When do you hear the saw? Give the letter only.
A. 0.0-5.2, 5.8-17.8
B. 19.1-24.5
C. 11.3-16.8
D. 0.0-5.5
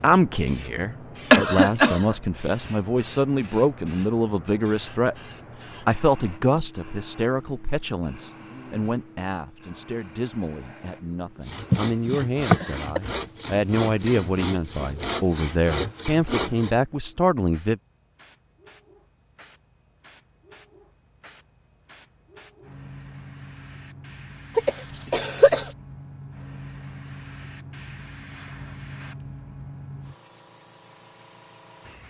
C.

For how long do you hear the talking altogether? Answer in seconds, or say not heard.
17 s.